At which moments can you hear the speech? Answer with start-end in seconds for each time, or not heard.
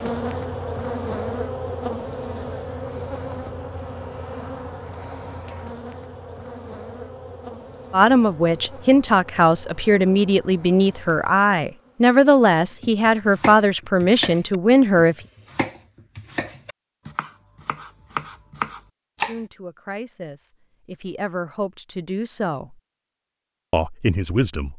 7.9-15.2, 19.2-22.8, 23.7-24.7.